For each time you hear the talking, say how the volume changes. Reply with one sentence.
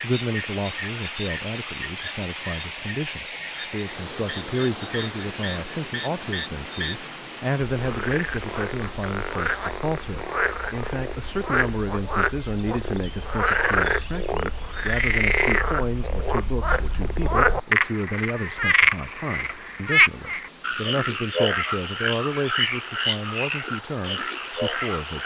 The talking can be heard from 0.0 to 25.2 s, at a steady volume.